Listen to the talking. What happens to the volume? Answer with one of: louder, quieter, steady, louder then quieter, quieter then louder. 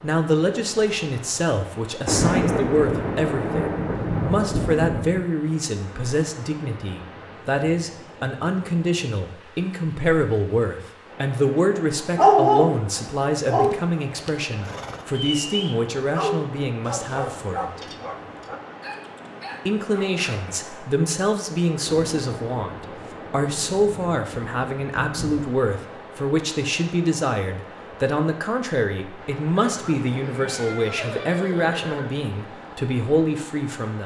steady.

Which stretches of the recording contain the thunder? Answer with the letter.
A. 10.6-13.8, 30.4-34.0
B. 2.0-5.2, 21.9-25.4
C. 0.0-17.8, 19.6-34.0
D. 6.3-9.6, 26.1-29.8
B.